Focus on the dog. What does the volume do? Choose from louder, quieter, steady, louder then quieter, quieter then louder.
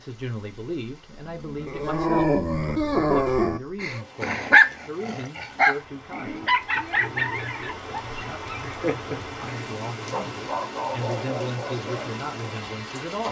quieter.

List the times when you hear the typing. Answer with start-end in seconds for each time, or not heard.
not heard.